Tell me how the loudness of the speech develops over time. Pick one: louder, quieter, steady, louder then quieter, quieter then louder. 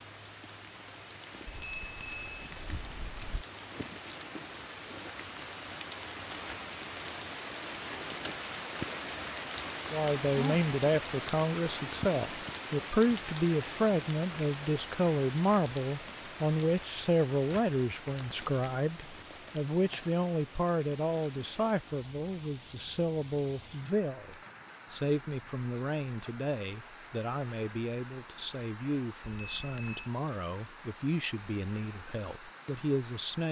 quieter.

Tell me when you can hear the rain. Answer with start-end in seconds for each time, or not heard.
0.0-33.4.